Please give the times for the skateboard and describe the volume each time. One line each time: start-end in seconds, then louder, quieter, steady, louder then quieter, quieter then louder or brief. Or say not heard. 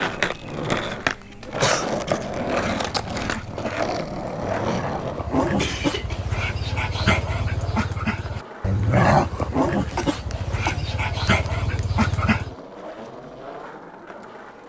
0.0-14.6 quieter.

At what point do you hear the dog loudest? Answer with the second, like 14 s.
9 s.